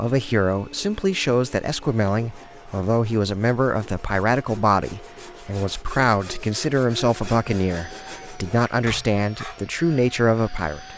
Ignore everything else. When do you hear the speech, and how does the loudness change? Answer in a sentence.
The speech can be heard from 0.0 to 10.9 s, at a steady volume.